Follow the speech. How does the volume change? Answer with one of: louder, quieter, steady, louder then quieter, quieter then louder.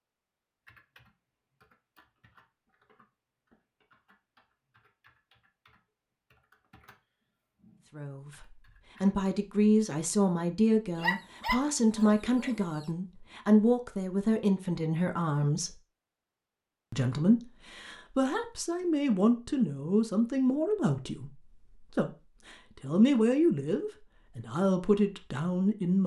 steady.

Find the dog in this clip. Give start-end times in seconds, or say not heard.
10.9-12.8.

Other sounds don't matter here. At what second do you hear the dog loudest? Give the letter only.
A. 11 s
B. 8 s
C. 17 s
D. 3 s
A.